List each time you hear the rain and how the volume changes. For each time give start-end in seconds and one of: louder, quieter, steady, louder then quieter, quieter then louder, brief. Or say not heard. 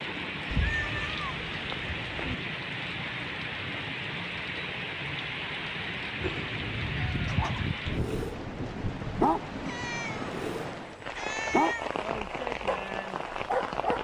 0.0-13.9 steady.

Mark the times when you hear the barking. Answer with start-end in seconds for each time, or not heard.
6.8-8.3, 9.2-10.7, 11.4-13.9.